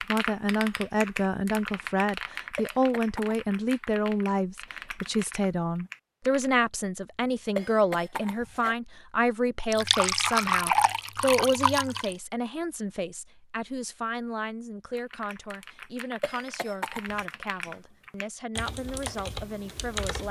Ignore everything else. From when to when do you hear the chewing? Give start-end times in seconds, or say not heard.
not heard.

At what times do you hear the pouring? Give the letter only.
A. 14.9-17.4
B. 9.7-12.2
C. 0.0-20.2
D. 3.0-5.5
B.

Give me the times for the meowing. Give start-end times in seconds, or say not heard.
not heard.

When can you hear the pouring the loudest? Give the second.
11 s.